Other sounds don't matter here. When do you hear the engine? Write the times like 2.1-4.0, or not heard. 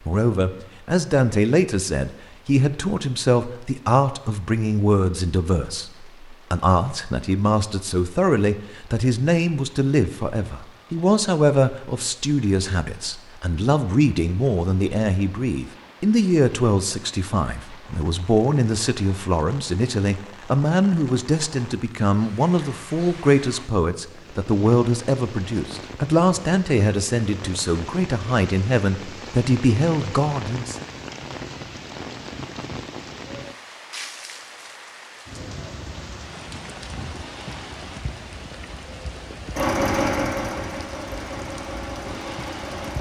39.5-42.9.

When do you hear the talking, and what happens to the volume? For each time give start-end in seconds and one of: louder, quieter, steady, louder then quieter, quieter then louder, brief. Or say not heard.
0.1-30.8 steady.